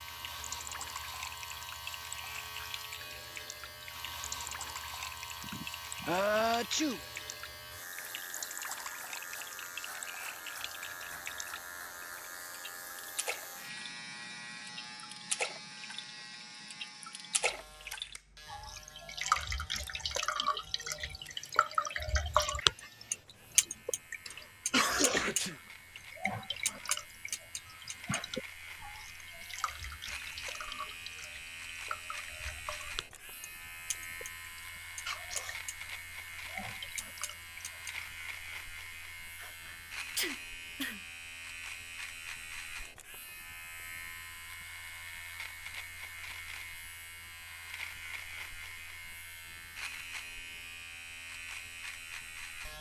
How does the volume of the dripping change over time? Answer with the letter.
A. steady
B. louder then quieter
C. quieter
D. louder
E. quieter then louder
B.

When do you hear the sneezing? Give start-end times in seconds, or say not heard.
5.4-7.0, 24.2-25.6, 39.4-41.0.